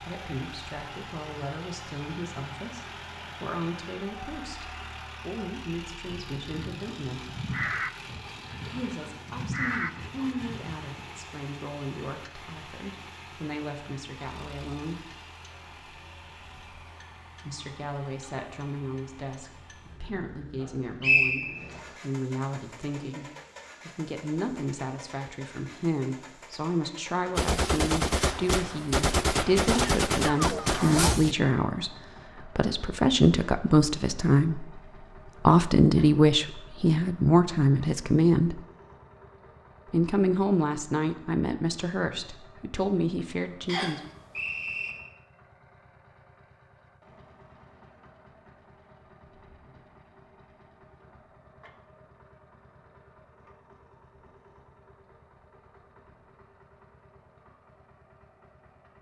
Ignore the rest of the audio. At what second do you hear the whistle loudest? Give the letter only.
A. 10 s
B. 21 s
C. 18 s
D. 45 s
B.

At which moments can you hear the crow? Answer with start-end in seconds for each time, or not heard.
6.0-11.2.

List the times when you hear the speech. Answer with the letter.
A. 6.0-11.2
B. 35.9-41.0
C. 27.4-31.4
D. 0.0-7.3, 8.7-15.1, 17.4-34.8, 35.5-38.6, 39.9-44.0
D.